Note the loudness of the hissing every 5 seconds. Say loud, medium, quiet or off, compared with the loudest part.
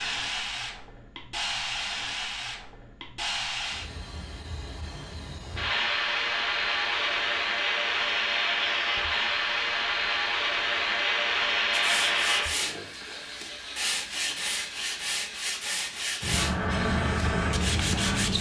medium, loud, loud, loud.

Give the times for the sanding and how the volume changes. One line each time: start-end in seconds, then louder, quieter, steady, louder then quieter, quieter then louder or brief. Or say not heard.
11.7-18.3 steady.